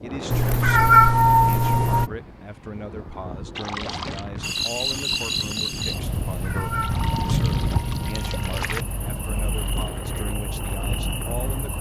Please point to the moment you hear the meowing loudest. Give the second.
1 s.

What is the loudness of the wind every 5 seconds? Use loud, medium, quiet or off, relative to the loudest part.
medium, loud, medium.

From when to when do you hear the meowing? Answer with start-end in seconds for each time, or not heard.
0.3-2.1, 6.1-8.8.